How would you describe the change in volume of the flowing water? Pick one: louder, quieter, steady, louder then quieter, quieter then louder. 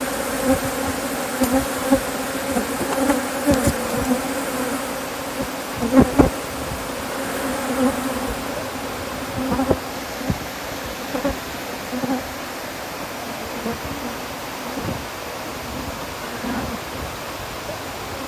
steady.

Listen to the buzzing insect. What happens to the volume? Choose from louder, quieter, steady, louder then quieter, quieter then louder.
quieter.